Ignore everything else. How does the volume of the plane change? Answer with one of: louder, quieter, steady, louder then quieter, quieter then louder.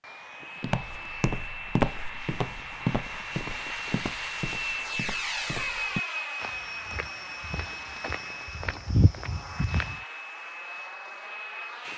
louder then quieter.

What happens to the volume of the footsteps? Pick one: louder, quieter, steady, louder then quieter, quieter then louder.
quieter then louder.